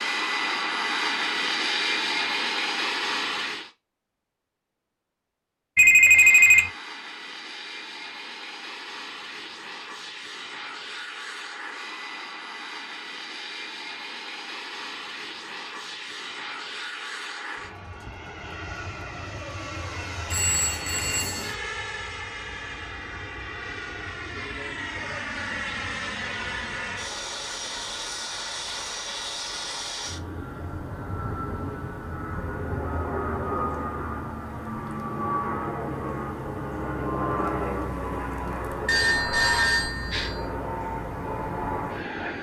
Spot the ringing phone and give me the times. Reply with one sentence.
You can hear the ringing phone from 5.8 to 6.7 s, from 20.3 to 21.6 s and from 38.9 to 40.4 s.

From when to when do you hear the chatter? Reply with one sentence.
The chatter can't be heard in this clip.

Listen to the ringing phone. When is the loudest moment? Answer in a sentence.
The volume of the ringing phone peaks at 6 seconds.